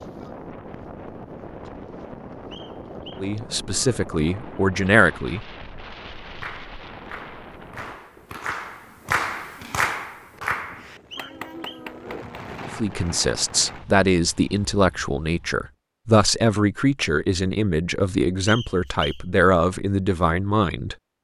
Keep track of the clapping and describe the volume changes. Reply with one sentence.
The loudness of the clapping goes up, then down.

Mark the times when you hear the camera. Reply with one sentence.
The camera can't be heard in this clip.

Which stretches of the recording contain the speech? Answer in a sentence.
The speech can be heard from 3.1 to 5.4 s and from 12.8 to 20.9 s.